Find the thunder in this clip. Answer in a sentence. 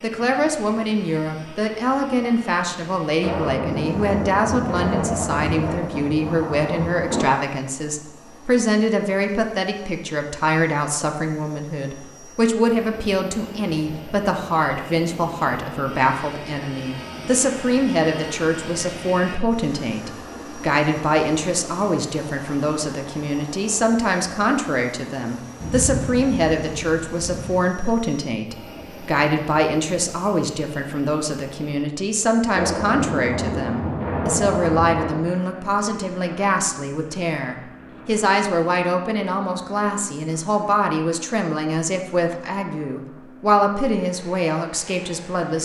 The thunder can be heard from 3.2 to 7.2 s, from 25.6 to 27.6 s and from 32.5 to 35.3 s.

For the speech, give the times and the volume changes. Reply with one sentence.
The speech can be heard from 0.0 to 45.6 s, at a steady volume.